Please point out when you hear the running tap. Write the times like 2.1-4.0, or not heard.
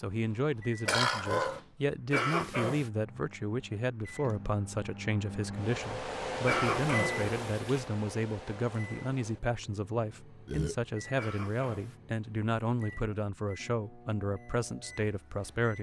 not heard.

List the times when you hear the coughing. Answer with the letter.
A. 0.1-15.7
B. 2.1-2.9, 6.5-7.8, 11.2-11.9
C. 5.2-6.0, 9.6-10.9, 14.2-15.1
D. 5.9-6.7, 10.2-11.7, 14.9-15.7
B.